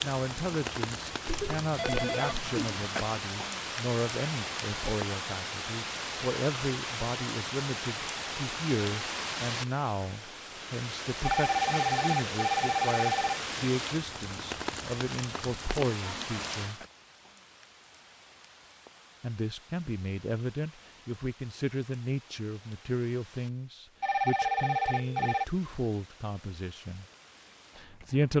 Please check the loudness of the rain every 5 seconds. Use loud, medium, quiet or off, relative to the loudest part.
loud, loud, loud, medium, quiet, quiet.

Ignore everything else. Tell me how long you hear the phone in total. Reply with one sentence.
The phone can be heard for 5 seconds in total.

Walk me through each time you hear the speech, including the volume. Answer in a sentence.
You can hear the speech from 0.0 to 16.9 s, at a steady volume; from 19.2 to 27.1 s, at a steady volume; and briefly from 27.8 to 28.3 s.